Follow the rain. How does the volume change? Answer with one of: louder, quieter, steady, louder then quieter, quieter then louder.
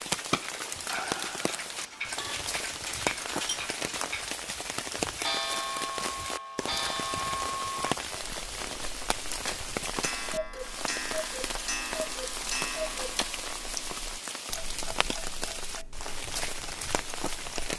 steady.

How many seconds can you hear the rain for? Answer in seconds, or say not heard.
18 s.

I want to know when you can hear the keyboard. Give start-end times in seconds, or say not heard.
not heard.